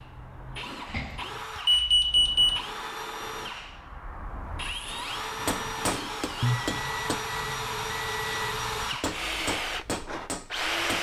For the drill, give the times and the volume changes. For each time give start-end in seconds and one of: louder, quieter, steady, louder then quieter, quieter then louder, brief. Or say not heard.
0.0-10.9 louder.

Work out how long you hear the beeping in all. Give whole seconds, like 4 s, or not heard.
4 s.